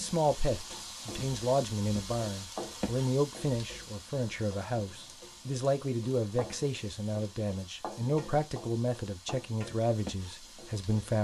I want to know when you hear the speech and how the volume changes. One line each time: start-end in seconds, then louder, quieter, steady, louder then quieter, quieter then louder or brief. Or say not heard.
0.0-11.1 steady.